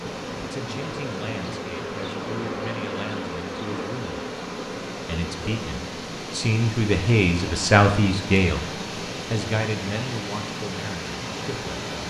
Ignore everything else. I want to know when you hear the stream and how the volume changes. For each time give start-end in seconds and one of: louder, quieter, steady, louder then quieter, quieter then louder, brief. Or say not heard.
0.0-12.0 louder.